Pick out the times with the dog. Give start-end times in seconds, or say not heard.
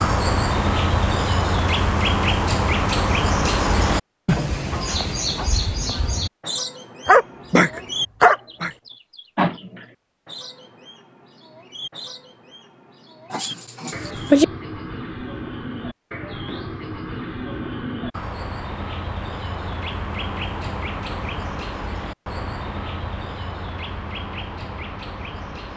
7.0-8.7, 13.3-14.4.